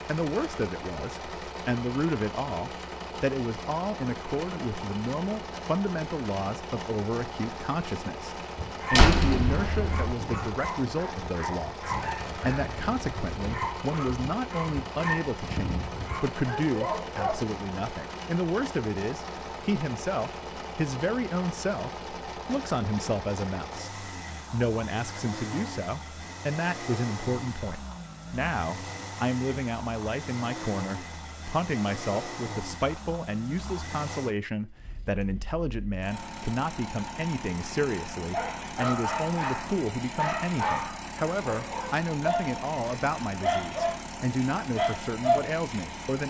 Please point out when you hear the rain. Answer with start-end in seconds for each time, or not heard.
not heard.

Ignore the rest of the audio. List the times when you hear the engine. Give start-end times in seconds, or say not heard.
0.0-46.2.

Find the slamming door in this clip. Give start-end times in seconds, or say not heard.
8.9-10.2.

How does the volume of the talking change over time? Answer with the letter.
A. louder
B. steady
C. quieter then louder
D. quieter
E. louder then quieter
B.